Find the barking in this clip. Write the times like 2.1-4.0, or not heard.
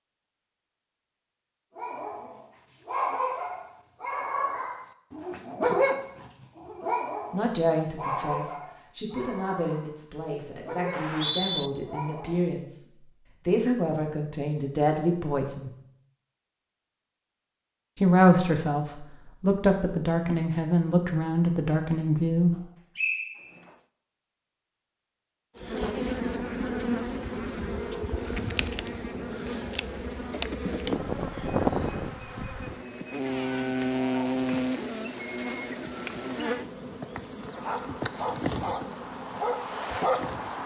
1.8-12.5, 37.5-40.6.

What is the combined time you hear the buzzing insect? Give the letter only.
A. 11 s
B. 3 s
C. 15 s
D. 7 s
C.